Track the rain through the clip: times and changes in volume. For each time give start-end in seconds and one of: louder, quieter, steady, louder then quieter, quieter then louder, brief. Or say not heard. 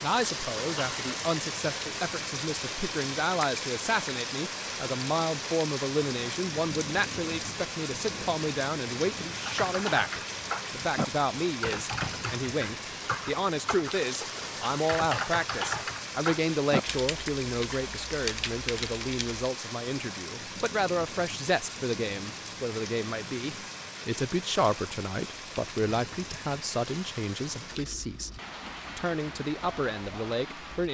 0.0-30.8 quieter.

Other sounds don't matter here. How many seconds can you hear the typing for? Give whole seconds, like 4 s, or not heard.
10 s.